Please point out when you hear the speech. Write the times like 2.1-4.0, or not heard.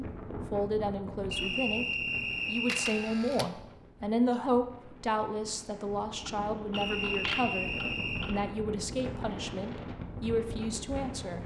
0.0-1.9, 2.5-11.4.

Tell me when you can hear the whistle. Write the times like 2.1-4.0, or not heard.
1.3-3.0, 6.7-8.3.